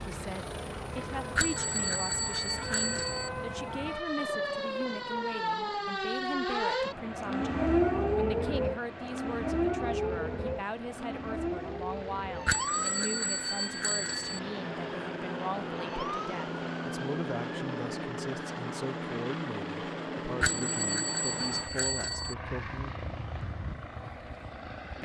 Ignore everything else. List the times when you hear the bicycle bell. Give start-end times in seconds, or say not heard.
1.4-3.3, 12.4-14.4, 20.4-22.4.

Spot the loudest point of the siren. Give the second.
8 s.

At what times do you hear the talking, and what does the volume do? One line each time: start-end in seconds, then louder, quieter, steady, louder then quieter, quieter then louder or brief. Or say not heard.
0.0-22.9 steady.